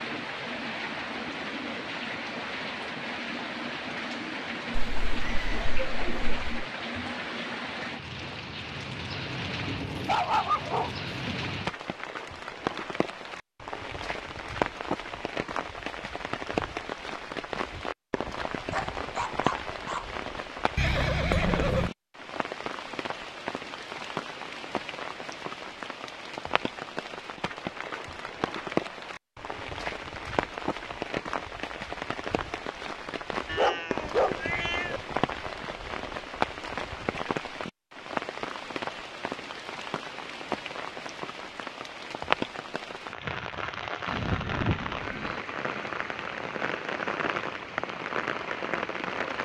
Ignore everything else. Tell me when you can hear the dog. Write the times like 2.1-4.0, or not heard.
9.7-11.6, 18.7-20.1, 33.5-35.0.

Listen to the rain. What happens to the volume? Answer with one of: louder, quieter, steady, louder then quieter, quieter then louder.
steady.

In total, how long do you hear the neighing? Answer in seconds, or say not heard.
4 s.